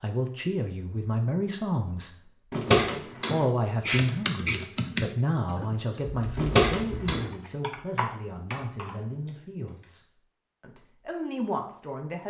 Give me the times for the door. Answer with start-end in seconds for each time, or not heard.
2.5-3.4, 6.3-7.2.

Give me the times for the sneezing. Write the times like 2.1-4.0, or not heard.
3.4-4.6.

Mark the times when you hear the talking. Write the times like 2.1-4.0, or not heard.
0.0-2.3, 3.3-12.2.